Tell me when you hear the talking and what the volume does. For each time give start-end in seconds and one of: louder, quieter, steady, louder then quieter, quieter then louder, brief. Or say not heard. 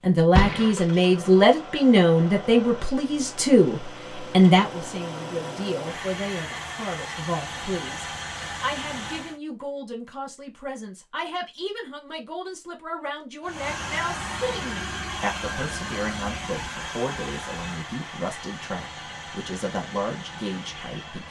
0.0-21.2 quieter.